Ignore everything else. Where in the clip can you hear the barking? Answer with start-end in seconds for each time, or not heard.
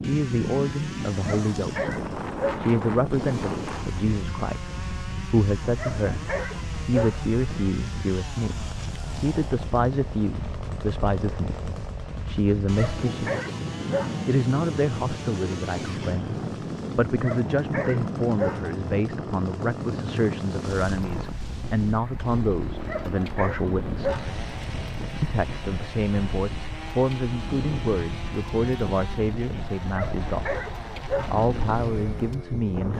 1.2-2.7, 5.8-7.3, 12.8-14.2, 17.2-18.8, 22.9-24.4, 29.9-31.4.